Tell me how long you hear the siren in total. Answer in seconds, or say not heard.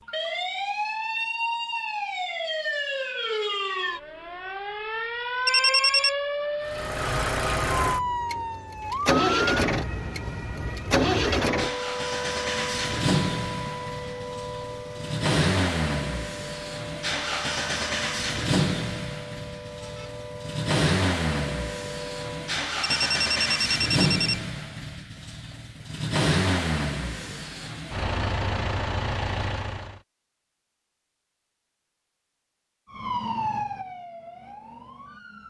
25 s.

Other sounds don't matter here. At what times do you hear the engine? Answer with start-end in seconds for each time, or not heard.
6.7-30.0.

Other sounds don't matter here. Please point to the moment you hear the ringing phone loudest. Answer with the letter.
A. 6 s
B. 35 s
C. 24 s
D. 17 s
A.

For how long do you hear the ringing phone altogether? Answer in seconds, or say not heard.
2 s.